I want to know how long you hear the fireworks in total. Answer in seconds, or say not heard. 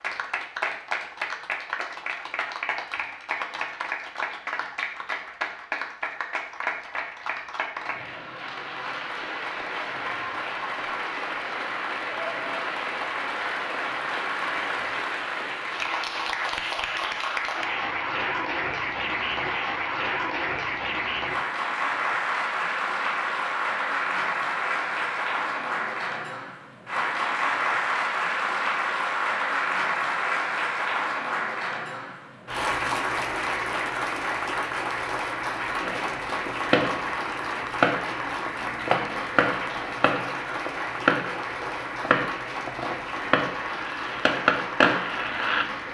10 s.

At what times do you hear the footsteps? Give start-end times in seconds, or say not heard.
not heard.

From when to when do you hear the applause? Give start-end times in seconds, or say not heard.
0.0-45.8.